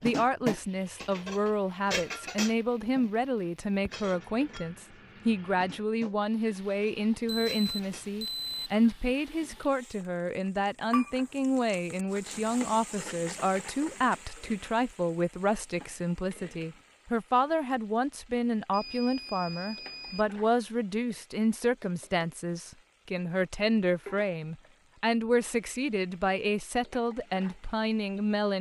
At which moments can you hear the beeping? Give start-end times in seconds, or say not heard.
7.2-8.7, 18.7-20.2.